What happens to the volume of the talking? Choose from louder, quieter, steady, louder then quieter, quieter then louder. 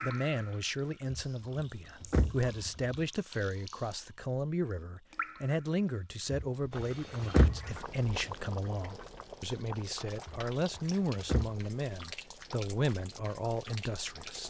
steady.